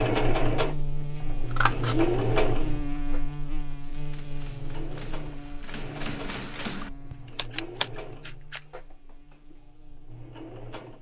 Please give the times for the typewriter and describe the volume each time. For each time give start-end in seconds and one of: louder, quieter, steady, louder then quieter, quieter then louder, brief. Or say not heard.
3.9-8.0 louder.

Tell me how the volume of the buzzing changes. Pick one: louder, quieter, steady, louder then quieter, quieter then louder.
quieter.